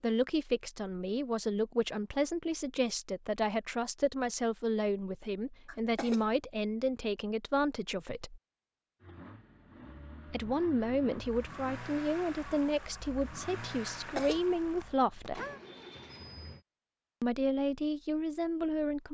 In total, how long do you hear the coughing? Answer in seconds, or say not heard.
2 s.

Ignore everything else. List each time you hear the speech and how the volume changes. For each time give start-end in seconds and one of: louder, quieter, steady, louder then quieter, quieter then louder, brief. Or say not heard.
0.0-8.4 steady
10.3-15.4 quieter then louder
17.2-19.1 brief.